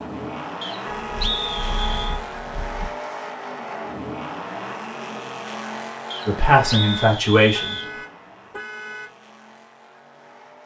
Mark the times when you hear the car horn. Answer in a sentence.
The car horn can be heard from 0.8 to 2.9 s and from 6.6 to 9.1 s.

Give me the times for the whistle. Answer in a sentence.
The whistle can be heard from 0.6 to 2.2 s and from 6.1 to 7.9 s.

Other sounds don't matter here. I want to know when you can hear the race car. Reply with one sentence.
The race car can be heard from 0.0 to 10.6 s.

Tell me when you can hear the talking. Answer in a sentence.
The talking can be heard from 6.2 to 7.8 s.